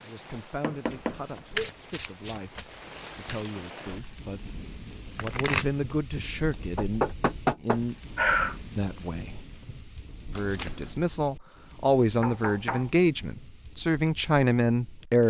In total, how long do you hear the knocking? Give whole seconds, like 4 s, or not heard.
3 s.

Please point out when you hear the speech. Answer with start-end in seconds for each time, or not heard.
0.0-8.0, 8.8-9.4, 10.3-15.2.